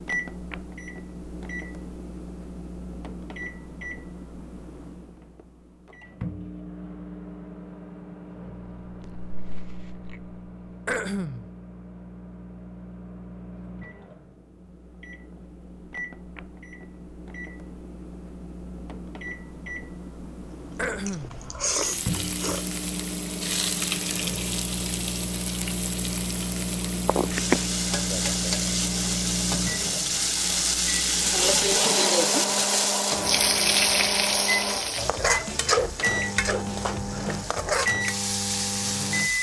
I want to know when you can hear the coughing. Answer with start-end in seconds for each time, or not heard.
10.8-11.5, 20.8-21.4.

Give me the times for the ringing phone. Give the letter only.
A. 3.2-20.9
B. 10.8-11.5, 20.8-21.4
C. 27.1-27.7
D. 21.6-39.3
C.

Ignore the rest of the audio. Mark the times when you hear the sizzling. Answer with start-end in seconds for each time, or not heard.
21.6-39.3.